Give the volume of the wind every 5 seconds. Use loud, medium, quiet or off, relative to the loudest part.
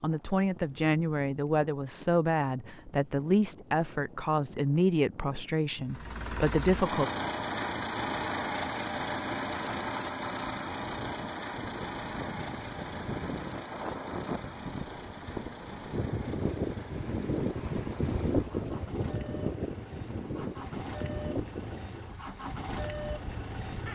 quiet, quiet, medium, loud, medium.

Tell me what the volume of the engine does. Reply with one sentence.
The volume of the engine goes down, then up.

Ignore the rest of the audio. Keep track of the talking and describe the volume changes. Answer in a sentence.
The loudness of the talking stays about the same.